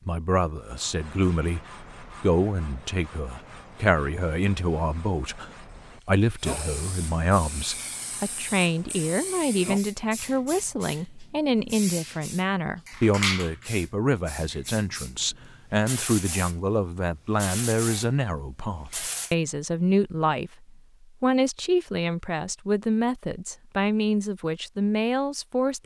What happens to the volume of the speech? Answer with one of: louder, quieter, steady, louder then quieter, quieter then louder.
steady.